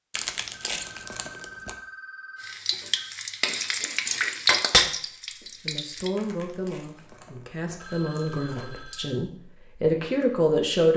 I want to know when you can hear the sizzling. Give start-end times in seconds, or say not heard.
2.4-6.1.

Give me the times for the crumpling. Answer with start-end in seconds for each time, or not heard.
0.1-1.8, 6.2-8.8.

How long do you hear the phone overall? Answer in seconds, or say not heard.
4 s.